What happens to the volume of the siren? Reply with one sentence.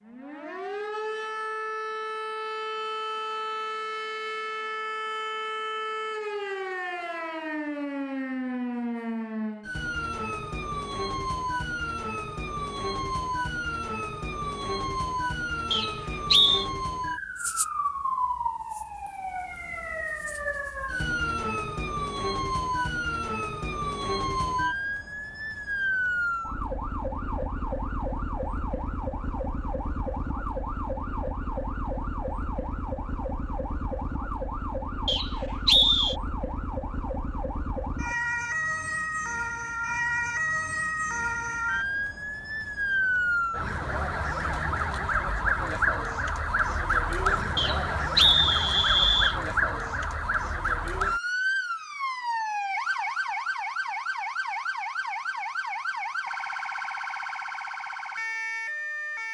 The volume of the siren stays about the same.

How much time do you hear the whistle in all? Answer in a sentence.
You can hear the whistle for 4 seconds altogether.